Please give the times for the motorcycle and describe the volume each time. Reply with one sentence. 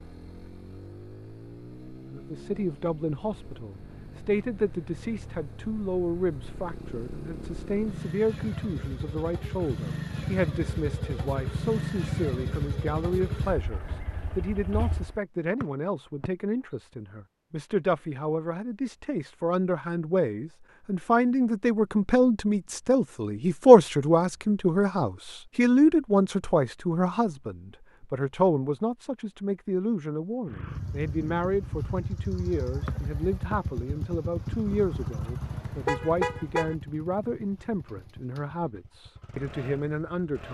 The motorcycle can be heard from 0.0 to 15.2 s, getting louder; and from 30.4 to 40.5 s, getting quieter.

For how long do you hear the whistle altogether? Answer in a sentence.
You can hear the whistle for 2 seconds altogether.